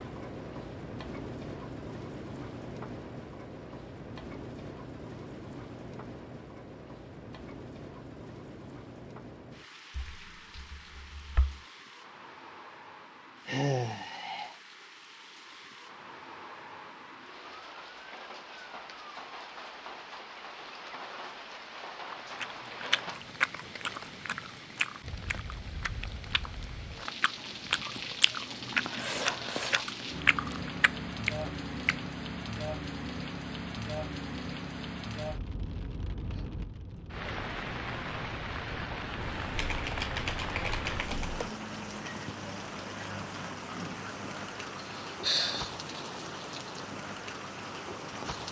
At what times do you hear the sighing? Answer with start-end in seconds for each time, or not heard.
13.4-14.6, 44.4-45.7.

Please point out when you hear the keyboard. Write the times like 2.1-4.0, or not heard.
9.9-11.6, 39.2-41.5.